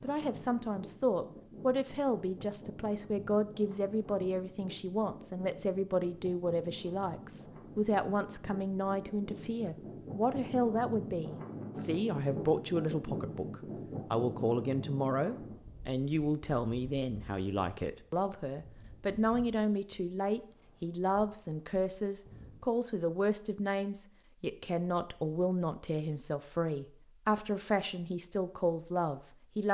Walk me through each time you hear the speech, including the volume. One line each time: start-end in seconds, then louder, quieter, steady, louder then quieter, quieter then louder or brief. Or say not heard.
0.0-29.6 steady.